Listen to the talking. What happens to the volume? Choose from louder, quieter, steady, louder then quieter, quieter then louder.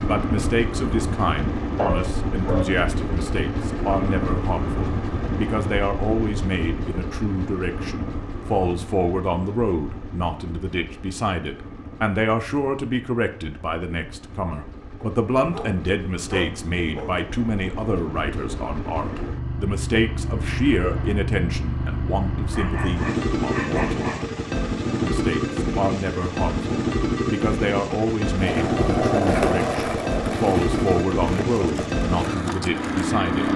steady.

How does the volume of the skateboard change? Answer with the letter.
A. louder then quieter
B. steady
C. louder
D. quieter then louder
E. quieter
E.